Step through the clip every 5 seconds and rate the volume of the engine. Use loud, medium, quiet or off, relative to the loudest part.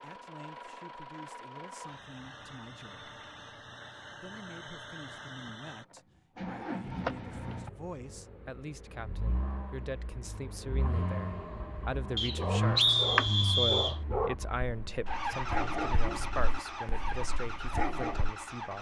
medium, loud, loud, loud.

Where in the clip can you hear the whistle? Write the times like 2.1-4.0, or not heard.
12.2-13.9.